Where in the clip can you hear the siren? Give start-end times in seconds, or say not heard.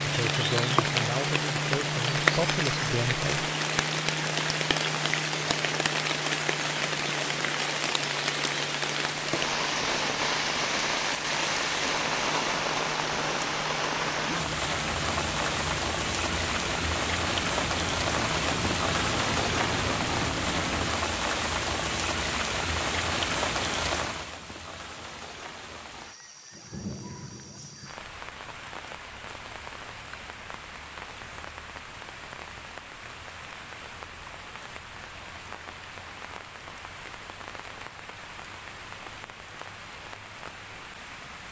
not heard.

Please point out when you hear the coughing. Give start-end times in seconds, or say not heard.
not heard.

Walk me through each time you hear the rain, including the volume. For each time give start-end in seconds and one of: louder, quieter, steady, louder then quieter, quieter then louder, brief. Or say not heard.
0.0-41.4 quieter.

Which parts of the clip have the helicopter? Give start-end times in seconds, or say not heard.
0.0-20.9.